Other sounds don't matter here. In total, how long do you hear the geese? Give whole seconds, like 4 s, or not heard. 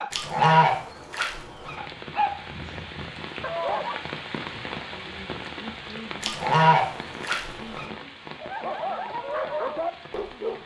3 s.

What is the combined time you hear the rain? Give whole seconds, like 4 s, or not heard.
9 s.